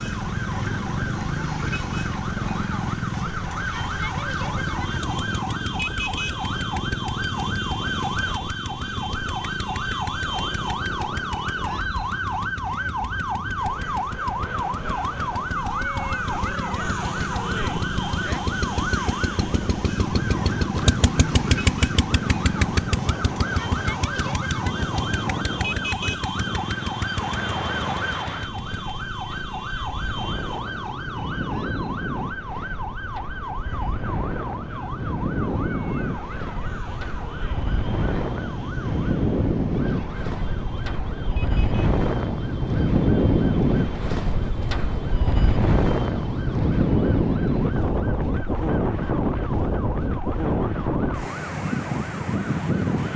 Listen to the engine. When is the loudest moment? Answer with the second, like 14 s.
21 s.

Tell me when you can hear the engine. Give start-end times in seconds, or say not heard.
0.0-28.8.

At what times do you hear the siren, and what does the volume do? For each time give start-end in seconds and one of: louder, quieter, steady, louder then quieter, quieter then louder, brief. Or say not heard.
0.0-53.1 quieter.